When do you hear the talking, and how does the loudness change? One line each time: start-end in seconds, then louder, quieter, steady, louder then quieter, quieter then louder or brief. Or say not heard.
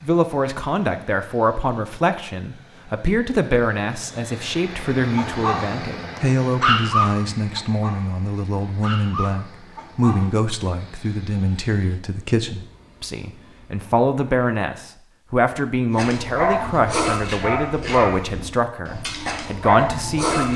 0.0-20.5 steady.